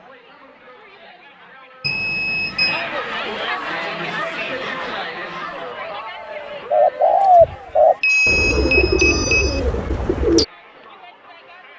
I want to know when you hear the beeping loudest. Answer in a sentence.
The volume of the beeping peaks at 8 seconds.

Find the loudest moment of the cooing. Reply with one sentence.
The volume of the cooing peaks at 7 seconds.